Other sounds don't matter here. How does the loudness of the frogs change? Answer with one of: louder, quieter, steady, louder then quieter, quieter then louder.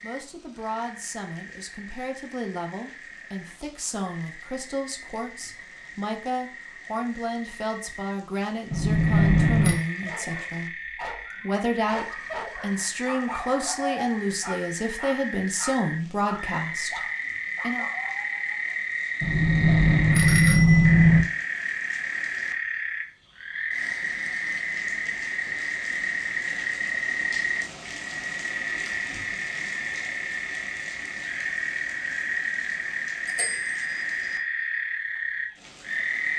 louder.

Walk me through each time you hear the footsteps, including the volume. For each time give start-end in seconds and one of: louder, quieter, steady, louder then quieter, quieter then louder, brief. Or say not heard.
not heard.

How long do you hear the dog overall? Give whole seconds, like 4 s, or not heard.
9 s.